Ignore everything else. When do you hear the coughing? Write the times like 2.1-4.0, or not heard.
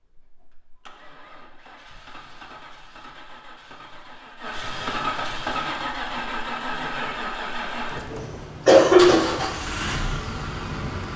8.0-9.4.